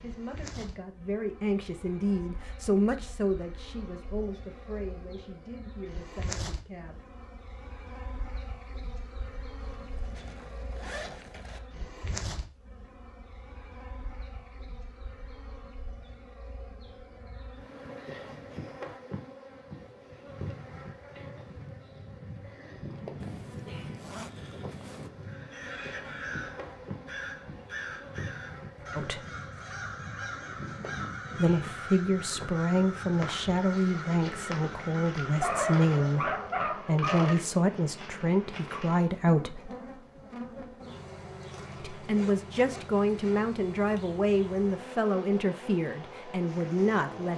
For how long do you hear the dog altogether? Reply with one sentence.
The dog can be heard for 2 seconds in total.